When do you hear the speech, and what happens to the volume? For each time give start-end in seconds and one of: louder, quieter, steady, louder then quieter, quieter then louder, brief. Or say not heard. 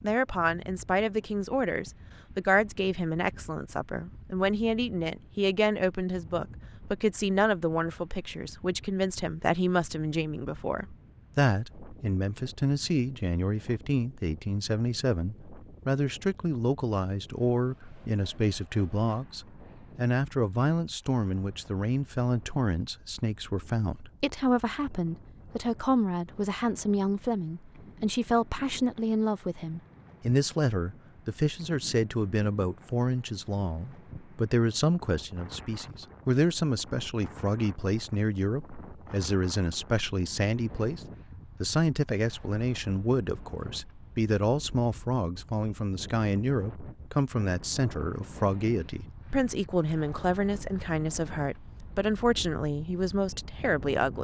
0.0-54.1 steady.